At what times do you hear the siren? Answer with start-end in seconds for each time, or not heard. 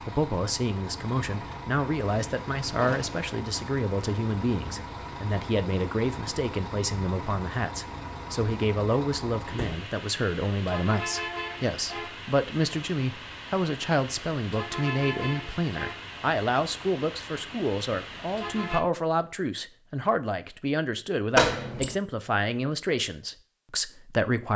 not heard.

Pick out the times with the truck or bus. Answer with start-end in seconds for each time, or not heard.
0.0-18.9.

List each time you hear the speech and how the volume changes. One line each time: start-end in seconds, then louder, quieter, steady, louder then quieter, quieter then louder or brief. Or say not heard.
0.0-24.5 steady.